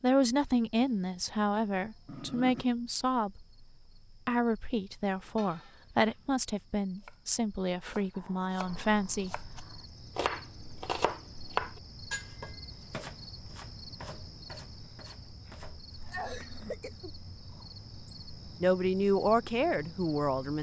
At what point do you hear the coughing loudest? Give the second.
16 s.